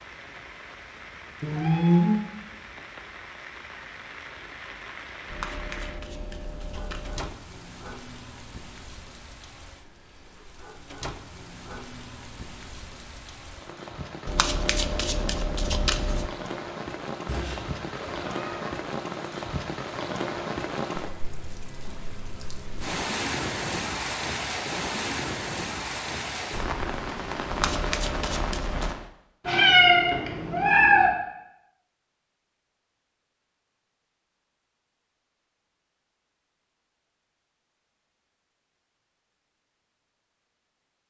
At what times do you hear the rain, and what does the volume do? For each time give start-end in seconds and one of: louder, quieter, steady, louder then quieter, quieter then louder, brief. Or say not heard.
0.0-29.1 louder.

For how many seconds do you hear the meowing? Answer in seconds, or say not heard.
4 s.